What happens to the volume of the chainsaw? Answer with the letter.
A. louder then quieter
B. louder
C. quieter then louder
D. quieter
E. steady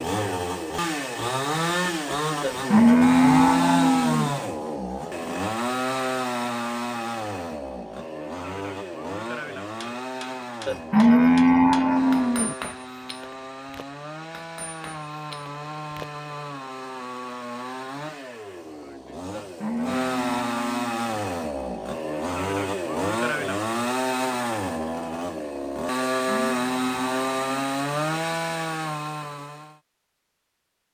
C.